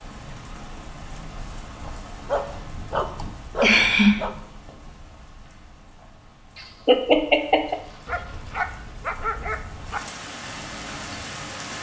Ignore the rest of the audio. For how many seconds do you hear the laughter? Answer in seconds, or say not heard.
2 s.